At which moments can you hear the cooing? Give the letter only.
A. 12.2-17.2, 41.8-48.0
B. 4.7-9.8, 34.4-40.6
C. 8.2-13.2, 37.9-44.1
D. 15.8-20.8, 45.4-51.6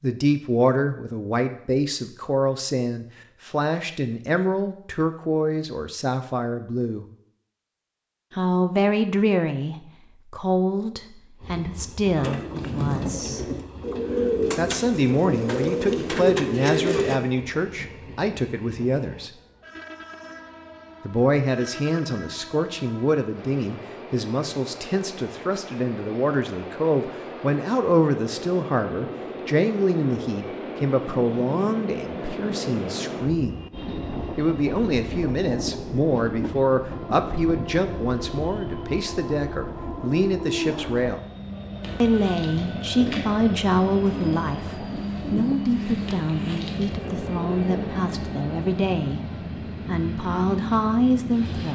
A.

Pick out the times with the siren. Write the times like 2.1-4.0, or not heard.
not heard.